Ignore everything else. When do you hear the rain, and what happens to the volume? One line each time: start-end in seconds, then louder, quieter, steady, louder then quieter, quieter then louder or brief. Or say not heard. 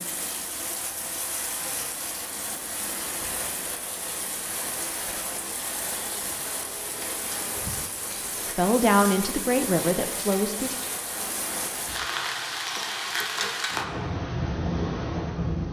0.0-15.6 louder.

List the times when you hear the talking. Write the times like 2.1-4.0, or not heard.
8.6-10.8.